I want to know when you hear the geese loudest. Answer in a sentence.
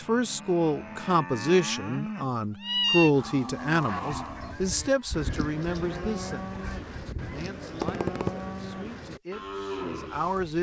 The volume of the geese peaks at 8 seconds.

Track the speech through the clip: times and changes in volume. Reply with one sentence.
The speech can be heard from 0.0 to 10.5 s, getting quieter.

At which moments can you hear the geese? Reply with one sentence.
You can hear the geese from 3.9 to 8.4 s.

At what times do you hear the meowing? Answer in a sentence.
The meowing can be heard from 2.2 to 3.1 s.